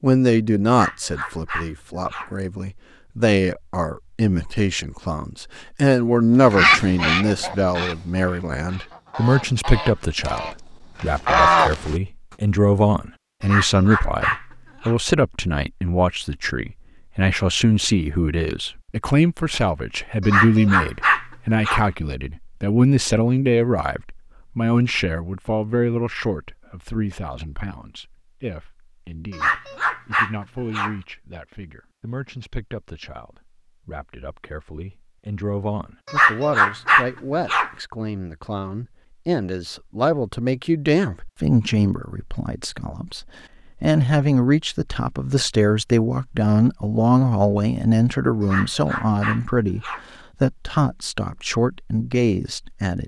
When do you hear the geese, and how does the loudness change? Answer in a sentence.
You can hear the geese from 6.4 to 11.9 s, getting quieter then louder.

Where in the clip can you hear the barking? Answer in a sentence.
You can hear the barking from 0.7 to 2.3 s, from 13.4 to 14.9 s, from 20.2 to 21.9 s, from 29.3 to 30.9 s, from 36.0 to 37.7 s and from 48.4 to 50.0 s.